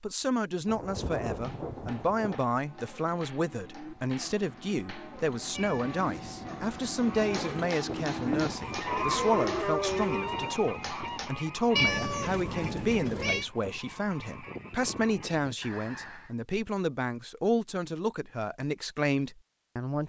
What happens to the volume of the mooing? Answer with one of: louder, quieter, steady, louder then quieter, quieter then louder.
louder.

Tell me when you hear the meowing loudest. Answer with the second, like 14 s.
12 s.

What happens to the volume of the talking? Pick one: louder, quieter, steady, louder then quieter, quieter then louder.
steady.